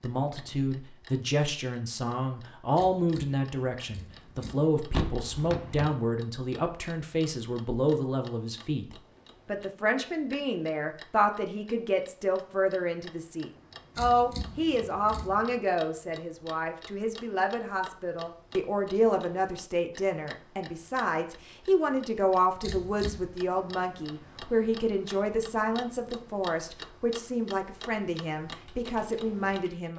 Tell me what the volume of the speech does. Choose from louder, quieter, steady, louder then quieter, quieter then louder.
steady.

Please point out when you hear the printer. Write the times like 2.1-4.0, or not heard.
not heard.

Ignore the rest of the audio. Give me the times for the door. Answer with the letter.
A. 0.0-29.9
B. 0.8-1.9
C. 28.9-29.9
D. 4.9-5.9
D.